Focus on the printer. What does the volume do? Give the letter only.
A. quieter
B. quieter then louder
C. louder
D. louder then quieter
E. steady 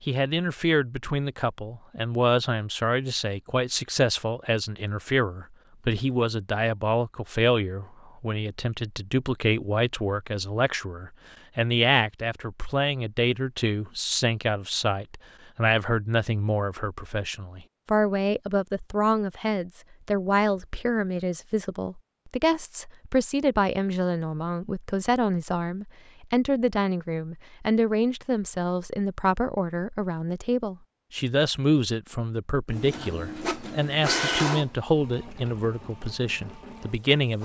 D.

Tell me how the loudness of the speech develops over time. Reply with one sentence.
The loudness of the speech stays about the same.